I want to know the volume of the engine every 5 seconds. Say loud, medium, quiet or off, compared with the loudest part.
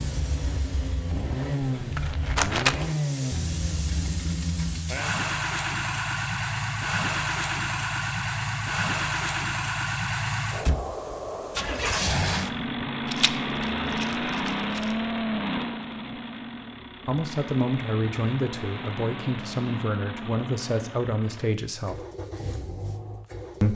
loud, loud, loud, medium, medium.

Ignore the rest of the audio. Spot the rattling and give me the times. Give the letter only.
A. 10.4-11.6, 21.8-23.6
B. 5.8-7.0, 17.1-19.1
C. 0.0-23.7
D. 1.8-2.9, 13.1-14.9
D.